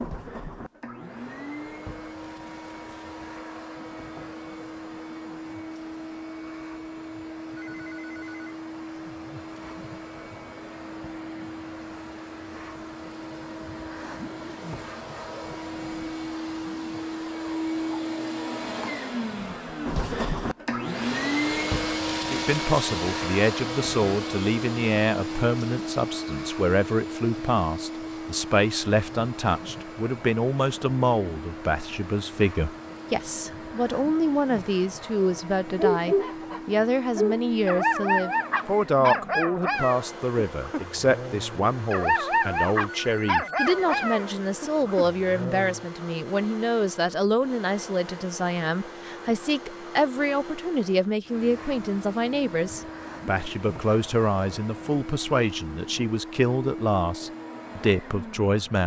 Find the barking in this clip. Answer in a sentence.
You can hear the barking from 35.8 to 45.9 s.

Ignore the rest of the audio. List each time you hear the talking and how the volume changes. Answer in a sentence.
You can hear the talking from 22.3 to 58.8 s, at a steady volume.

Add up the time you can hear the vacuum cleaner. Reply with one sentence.
The vacuum cleaner can be heard for 59 seconds in total.